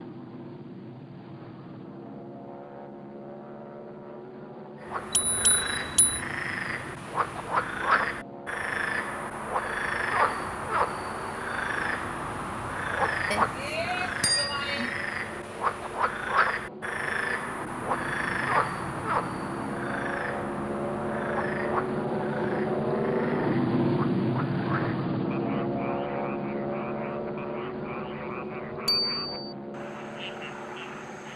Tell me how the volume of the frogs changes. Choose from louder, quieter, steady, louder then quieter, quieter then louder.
quieter.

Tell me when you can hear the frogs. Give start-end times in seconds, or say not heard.
4.8-31.3.